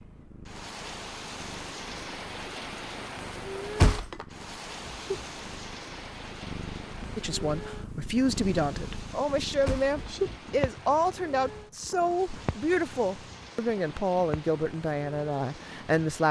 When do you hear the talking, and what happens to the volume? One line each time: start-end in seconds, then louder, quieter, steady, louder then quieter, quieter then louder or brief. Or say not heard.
7.2-16.2 steady.